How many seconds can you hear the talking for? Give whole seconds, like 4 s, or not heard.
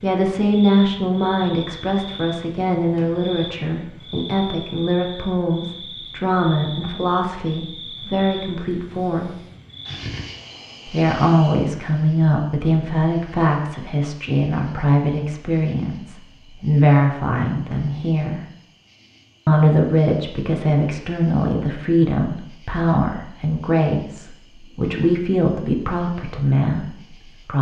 25 s.